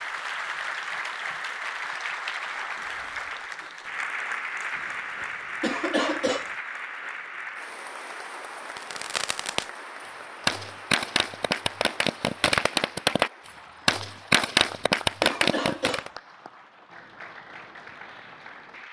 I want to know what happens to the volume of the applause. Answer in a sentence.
The volume of the applause goes down.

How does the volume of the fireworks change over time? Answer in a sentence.
The volume of the fireworks goes up.